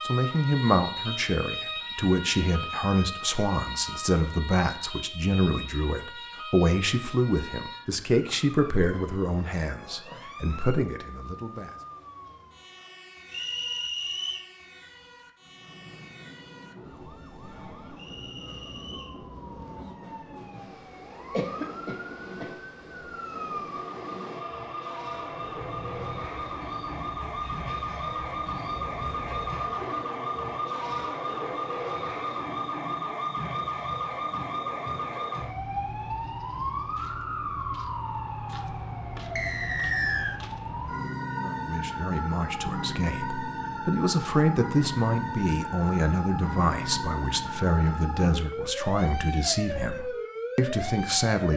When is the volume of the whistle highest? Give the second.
40 s.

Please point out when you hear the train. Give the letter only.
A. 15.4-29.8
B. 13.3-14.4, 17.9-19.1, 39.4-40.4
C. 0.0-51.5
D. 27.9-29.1
A.